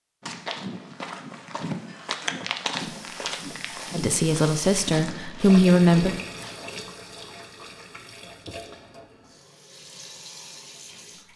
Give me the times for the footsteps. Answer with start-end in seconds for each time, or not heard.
0.2-6.8.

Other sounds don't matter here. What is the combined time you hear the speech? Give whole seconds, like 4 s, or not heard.
2 s.